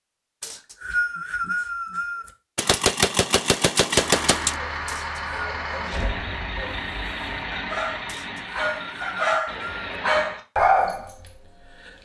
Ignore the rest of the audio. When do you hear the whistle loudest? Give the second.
1 s.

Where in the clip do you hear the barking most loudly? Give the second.
11 s.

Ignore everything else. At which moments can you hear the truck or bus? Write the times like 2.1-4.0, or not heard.
4.0-10.4.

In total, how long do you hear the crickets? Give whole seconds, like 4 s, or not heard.
not heard.